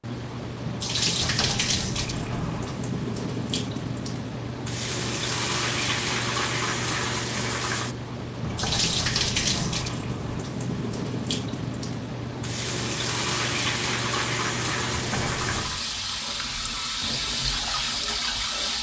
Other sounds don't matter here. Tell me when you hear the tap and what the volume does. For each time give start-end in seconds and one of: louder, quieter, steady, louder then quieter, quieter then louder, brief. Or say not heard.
0.0-18.7 steady.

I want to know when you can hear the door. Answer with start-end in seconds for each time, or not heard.
1.2-2.9, 8.4-10.4, 14.9-15.8.